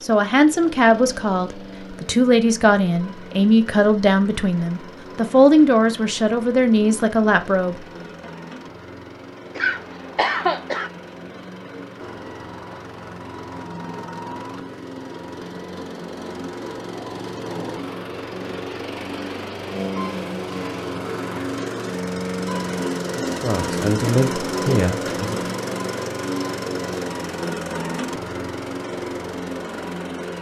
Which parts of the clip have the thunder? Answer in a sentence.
The thunder can't be heard in this clip.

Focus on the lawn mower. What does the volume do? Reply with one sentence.
The loudness of the lawn mower goes up.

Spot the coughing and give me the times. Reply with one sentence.
You can hear the coughing from 9.6 to 10.9 s.